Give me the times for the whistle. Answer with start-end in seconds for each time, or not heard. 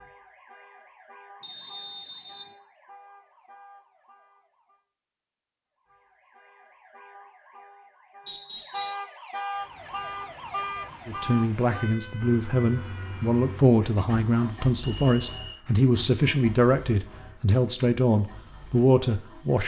1.4-2.5, 8.2-9.0, 15.0-15.7.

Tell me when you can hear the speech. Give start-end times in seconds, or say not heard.
11.1-19.6.